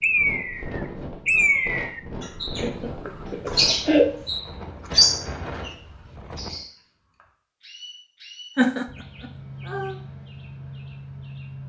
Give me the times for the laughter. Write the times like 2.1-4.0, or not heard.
2.6-4.2, 8.6-9.9.